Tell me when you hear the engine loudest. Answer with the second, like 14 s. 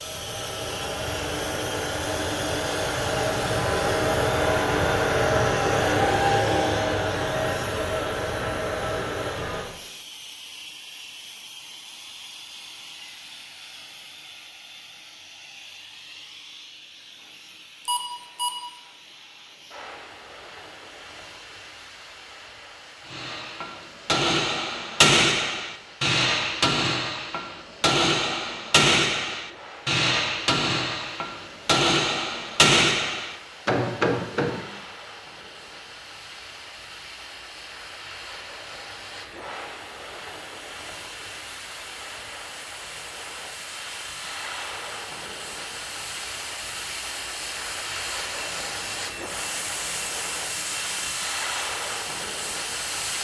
6 s.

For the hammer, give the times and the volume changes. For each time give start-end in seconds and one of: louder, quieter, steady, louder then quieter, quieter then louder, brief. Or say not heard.
23.1-34.6 steady.